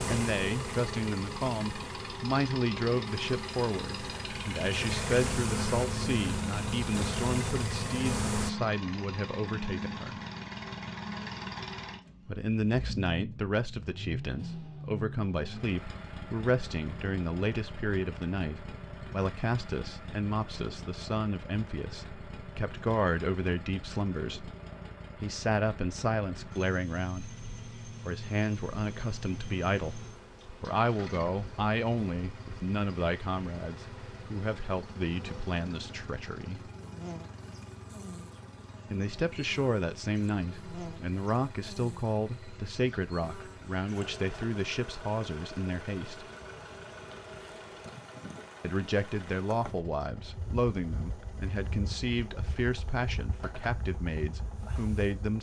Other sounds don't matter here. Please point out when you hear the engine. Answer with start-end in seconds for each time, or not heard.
0.0-55.3.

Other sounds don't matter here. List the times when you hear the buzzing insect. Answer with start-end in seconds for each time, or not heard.
0.0-8.5, 27.1-55.3.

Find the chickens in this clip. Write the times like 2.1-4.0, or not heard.
not heard.